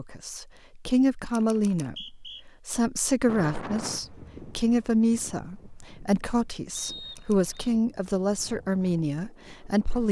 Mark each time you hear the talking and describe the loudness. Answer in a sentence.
The talking can be heard from 0.0 to 10.0 s, at a steady volume.